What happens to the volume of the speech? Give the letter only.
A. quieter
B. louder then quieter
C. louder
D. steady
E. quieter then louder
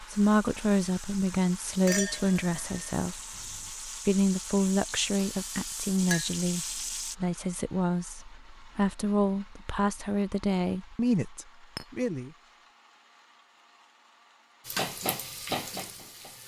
D.